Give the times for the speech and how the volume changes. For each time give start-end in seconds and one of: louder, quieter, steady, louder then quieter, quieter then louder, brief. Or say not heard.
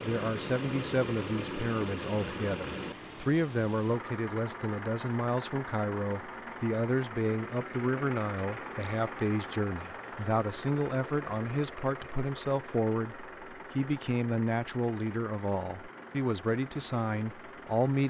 0.0-18.0 steady.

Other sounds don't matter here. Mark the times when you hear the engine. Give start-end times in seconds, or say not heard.
0.0-18.0.